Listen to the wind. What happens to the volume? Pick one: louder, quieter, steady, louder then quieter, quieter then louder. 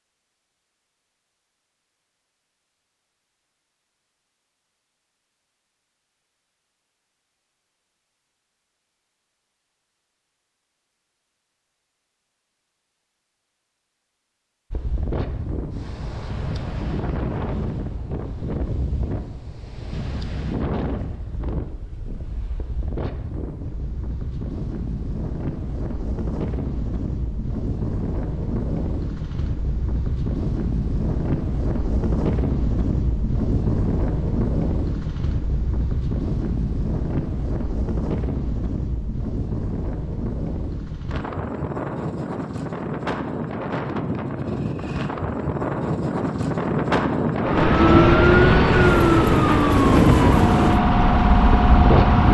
louder.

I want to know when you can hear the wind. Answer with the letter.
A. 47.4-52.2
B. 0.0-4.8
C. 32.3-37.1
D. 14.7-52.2
D.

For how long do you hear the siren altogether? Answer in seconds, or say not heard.
5 s.